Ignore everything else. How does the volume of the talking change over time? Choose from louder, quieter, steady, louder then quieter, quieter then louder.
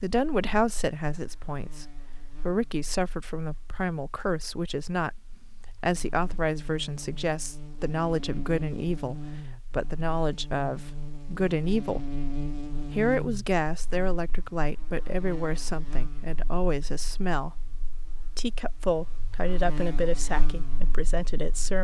steady.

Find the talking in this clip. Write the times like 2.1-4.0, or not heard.
0.0-12.1, 12.8-17.6, 18.4-21.7.